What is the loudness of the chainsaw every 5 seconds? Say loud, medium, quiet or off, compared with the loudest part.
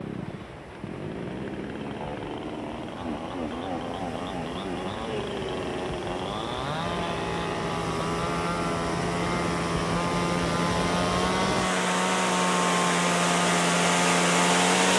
medium, medium, loud.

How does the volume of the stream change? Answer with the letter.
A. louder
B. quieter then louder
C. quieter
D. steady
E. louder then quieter
A.